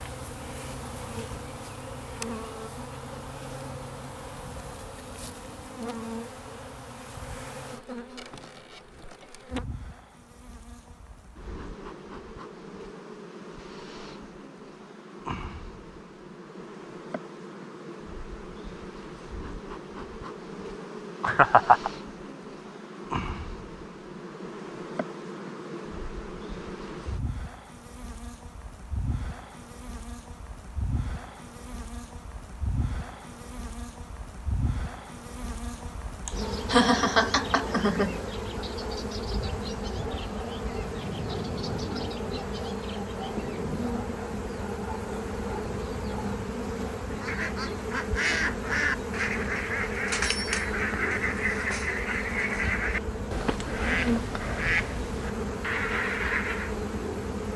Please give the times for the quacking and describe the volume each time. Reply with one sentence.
You can hear the quacking from 47.1 to 56.8 s, at a steady volume.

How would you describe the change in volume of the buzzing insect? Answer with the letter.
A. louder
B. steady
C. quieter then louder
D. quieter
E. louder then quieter
A.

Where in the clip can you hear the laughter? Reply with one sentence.
The laughter can be heard from 21.2 to 21.9 s and from 36.2 to 38.2 s.